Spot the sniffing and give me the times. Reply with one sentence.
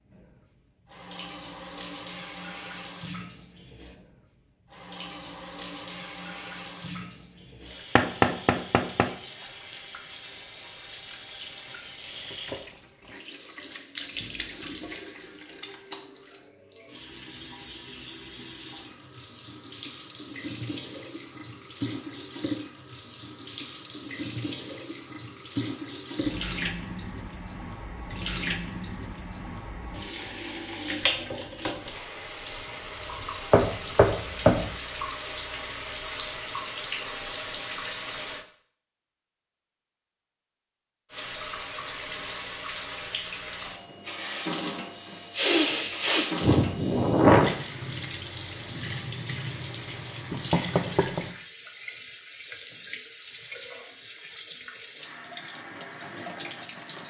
You can hear the sniffing from 45.4 to 47.5 s.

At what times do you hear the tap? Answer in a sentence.
You can hear the tap from 0.1 to 38.5 s and from 41.1 to 57.0 s.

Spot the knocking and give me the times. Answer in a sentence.
You can hear the knocking from 8.0 to 9.1 s, from 33.5 to 34.7 s and from 50.3 to 51.2 s.